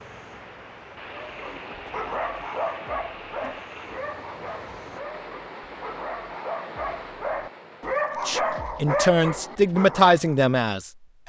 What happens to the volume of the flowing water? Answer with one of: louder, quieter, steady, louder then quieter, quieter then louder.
steady.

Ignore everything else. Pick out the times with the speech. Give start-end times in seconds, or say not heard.
8.2-11.2.